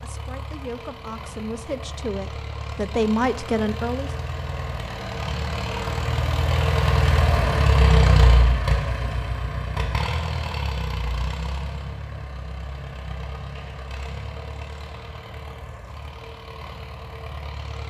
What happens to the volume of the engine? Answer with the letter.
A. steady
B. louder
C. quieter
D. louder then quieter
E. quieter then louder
D.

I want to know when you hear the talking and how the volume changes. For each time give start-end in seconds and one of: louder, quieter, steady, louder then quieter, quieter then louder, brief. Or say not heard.
0.0-4.1 louder.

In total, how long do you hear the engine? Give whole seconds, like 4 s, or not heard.
18 s.